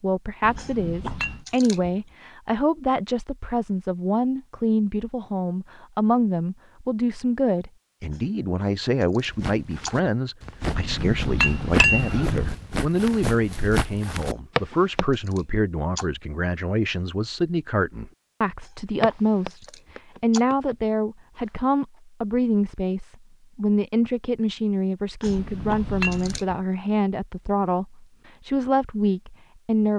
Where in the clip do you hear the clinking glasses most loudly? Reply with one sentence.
The volume of the clinking glasses peaks at 12 seconds.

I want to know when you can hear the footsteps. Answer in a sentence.
You can hear the footsteps from 9.2 to 15.1 s and from 19.0 to 22.0 s.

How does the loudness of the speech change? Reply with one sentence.
The volume of the speech stays about the same.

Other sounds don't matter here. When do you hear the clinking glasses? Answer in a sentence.
The clinking glasses can be heard from 0.4 to 1.4 s, from 10.6 to 12.6 s and from 25.2 to 26.4 s.